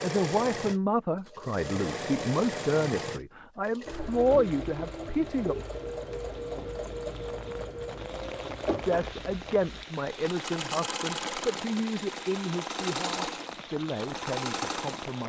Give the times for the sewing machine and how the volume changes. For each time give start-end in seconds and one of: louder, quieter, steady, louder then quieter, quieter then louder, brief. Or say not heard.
0.0-15.2 steady.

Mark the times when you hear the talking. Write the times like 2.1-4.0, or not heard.
0.0-5.5, 8.8-15.2.